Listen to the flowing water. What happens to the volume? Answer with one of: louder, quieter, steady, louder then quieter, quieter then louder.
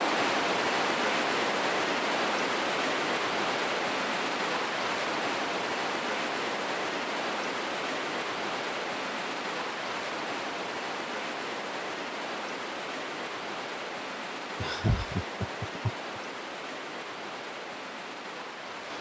quieter.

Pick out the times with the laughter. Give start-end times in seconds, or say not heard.
14.6-16.2.